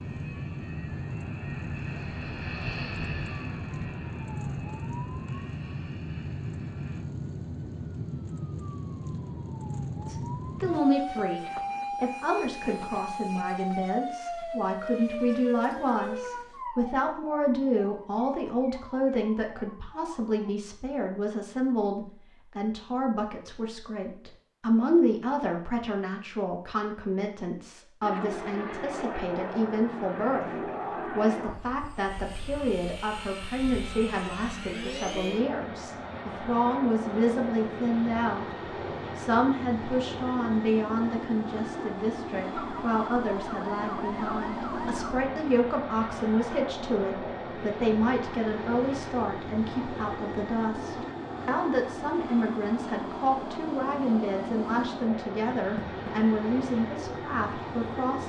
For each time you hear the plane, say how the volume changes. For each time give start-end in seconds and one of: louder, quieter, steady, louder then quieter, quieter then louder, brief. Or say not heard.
0.0-7.0 louder then quieter
28.0-58.2 steady.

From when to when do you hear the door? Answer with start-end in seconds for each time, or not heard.
55.5-56.1.